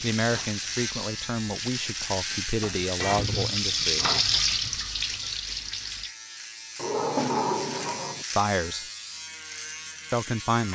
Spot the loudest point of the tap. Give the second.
4 s.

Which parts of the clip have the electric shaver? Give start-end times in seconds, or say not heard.
0.0-10.7.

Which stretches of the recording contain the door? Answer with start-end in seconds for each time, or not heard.
6.8-8.2.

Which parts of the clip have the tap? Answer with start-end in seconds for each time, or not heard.
0.0-6.2.